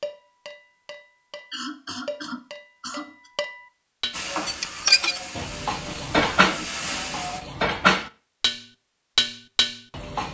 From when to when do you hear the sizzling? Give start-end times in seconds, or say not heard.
4.1-7.4.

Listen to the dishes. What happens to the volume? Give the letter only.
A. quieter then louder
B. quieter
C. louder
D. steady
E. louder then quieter
C.